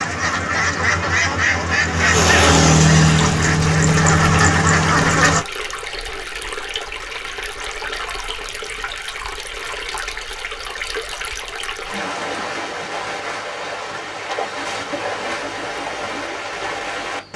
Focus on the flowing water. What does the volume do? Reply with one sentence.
The volume of the flowing water stays about the same.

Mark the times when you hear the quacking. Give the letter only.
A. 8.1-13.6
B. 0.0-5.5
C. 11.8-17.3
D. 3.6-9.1
B.